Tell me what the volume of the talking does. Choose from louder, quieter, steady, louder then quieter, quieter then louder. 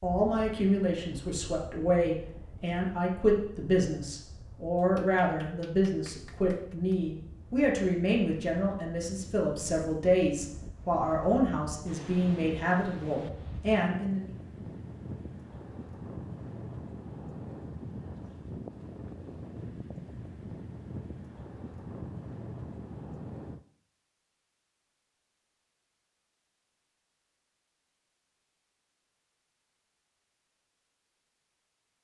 steady.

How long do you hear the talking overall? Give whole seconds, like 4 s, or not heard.
14 s.